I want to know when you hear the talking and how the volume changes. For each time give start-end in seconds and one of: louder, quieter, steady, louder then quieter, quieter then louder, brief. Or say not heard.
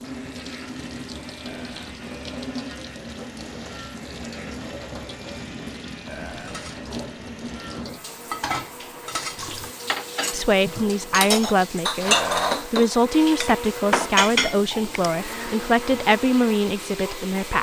10.3-17.5 steady.